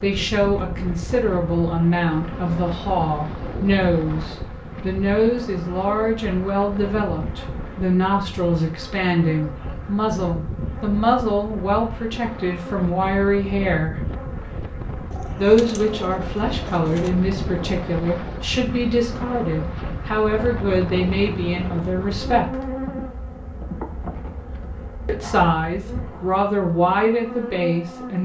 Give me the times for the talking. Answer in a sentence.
You can hear the talking from 0.0 to 14.0 s, from 15.3 to 22.6 s and from 25.1 to 28.2 s.